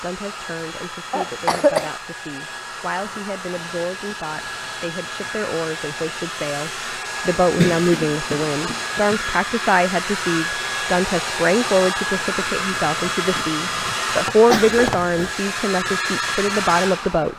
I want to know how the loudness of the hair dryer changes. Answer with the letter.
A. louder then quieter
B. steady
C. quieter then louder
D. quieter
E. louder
E.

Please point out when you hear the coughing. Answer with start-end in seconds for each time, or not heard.
1.1-1.9, 7.5-9.2, 14.5-15.3.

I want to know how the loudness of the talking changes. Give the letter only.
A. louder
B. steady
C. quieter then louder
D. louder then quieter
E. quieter
A.